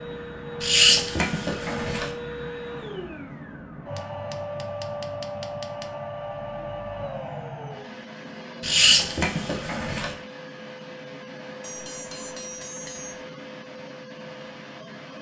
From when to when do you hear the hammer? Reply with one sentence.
You can hear the hammer from 4.0 to 5.9 s and from 11.6 to 13.2 s.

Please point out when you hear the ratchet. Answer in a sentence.
The ratchet can be heard from 0.6 to 2.1 s and from 8.6 to 10.2 s.